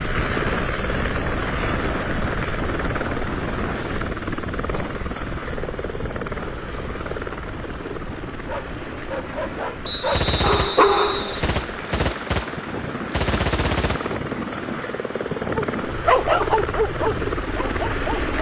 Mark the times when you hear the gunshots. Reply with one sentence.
The gunshots can be heard from 10.1 to 14.2 s.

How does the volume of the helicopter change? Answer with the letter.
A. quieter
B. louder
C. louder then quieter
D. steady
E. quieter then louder
E.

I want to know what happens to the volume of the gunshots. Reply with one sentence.
The loudness of the gunshots goes down, then up.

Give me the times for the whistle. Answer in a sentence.
You can hear the whistle from 9.8 to 11.6 s.